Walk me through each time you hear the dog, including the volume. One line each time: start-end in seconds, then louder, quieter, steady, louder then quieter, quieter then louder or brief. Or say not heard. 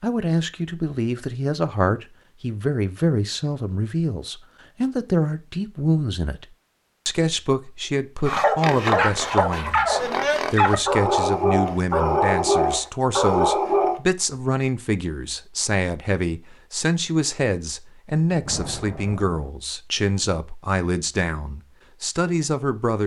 8.2-14.0 steady.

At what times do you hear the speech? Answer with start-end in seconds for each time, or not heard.
0.0-6.5, 7.0-23.0.